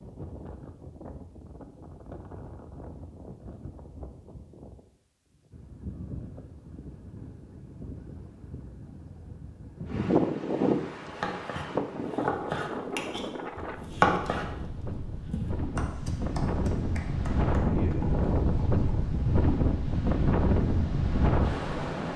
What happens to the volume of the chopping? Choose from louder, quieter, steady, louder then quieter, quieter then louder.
louder then quieter.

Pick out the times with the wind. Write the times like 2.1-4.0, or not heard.
0.0-22.1.